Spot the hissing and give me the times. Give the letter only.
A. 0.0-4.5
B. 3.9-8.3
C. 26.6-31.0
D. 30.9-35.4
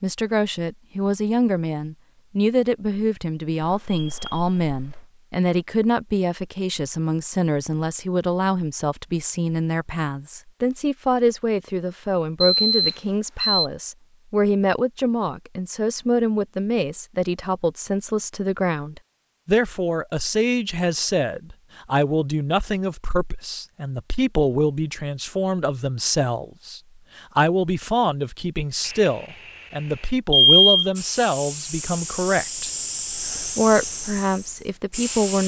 D.